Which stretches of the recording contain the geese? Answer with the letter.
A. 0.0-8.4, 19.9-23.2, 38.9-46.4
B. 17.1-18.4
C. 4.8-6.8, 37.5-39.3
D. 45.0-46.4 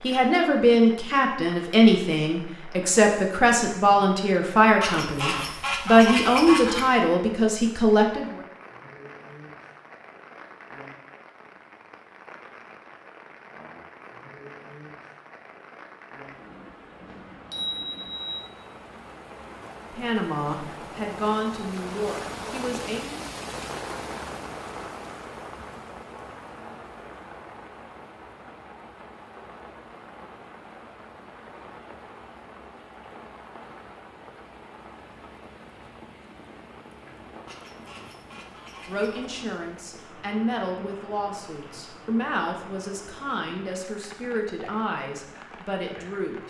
C.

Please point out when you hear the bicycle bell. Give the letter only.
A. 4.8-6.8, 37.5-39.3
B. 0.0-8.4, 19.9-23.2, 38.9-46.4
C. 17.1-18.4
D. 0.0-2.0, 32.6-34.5
C.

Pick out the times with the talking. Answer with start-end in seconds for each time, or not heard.
0.0-8.4, 19.9-23.2, 38.9-46.4.